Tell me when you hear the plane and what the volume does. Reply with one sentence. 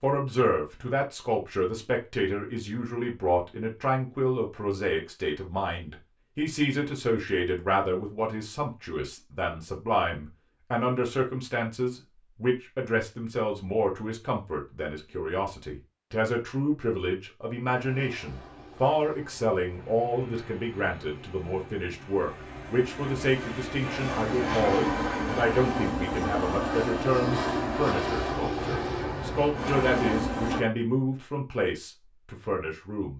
The plane can be heard from 17.8 to 30.6 s, getting louder.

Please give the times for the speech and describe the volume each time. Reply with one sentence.
You can hear the speech from 0.0 to 33.1 s, at a steady volume.